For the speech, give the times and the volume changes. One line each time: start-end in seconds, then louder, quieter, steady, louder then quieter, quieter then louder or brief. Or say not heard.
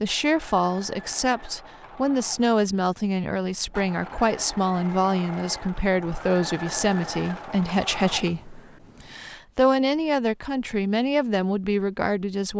0.0-12.5 steady.